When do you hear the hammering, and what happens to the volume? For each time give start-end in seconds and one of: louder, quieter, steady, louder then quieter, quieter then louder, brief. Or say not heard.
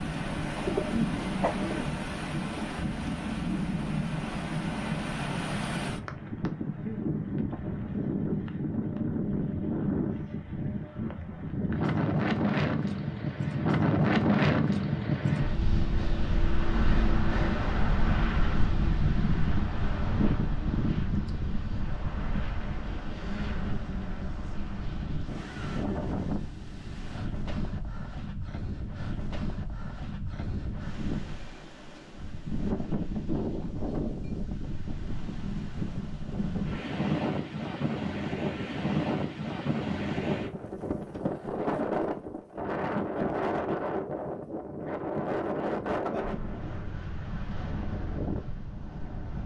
not heard.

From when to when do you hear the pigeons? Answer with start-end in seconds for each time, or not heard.
0.6-1.9.